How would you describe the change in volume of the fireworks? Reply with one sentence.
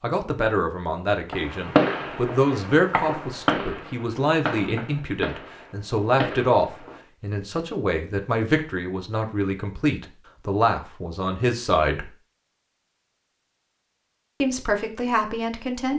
The loudness of the fireworks goes down.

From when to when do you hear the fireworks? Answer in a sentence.
The fireworks can be heard from 1.3 to 7.0 s.